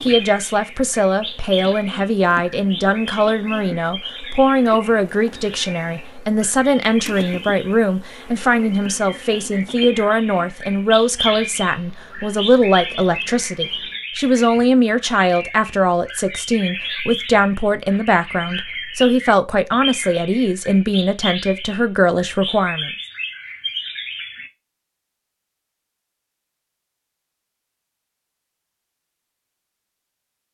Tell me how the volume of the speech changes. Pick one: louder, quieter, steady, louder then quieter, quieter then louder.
steady.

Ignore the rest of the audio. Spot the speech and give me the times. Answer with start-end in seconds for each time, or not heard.
0.0-22.9.